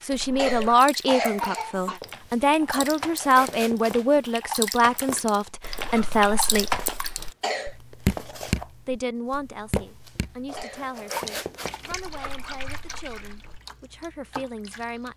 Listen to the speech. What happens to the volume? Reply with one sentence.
The loudness of the speech goes down.